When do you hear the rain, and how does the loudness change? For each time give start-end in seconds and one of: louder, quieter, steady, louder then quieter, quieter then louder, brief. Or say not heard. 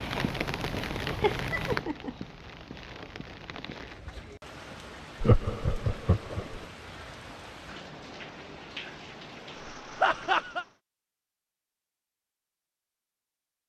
0.0-10.8 quieter.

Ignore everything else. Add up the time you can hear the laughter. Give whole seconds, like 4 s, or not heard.
3 s.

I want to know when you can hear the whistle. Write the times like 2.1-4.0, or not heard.
not heard.